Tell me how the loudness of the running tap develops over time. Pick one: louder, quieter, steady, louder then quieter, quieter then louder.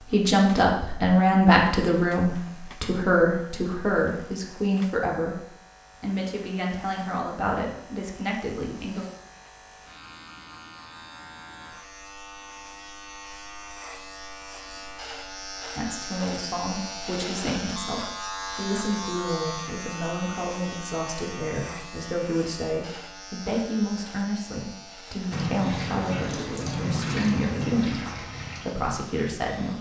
quieter.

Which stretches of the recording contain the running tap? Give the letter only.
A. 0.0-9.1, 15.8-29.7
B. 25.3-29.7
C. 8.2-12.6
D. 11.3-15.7
B.